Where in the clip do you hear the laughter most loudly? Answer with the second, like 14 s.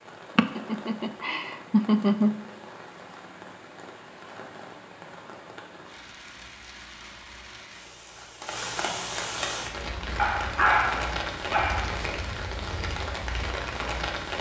2 s.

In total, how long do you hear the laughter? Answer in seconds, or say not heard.
2 s.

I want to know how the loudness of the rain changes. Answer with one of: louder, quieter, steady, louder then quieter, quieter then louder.
louder.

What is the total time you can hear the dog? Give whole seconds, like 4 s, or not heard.
2 s.